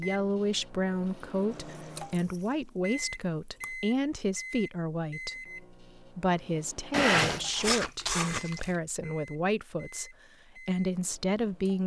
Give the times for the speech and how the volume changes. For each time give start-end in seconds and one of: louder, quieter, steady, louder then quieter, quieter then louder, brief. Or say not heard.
0.0-11.8 steady.